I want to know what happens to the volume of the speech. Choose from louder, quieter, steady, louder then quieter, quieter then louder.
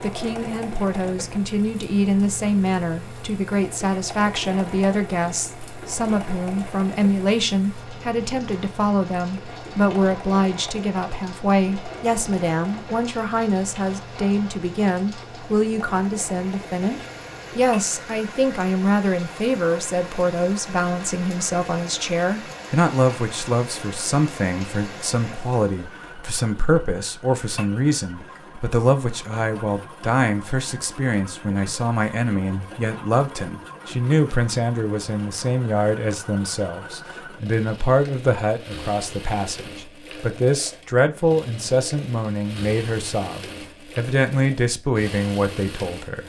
steady.